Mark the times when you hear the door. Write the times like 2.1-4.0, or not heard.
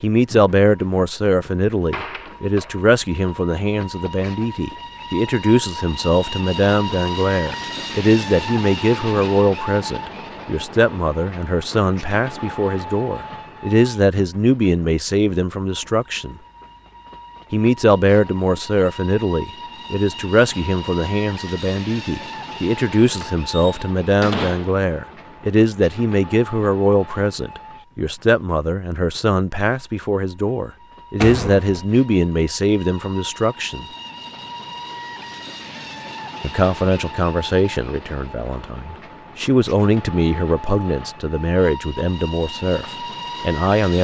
1.7-2.8, 23.2-24.8, 31.2-31.9.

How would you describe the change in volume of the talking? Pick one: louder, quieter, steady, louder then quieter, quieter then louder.
steady.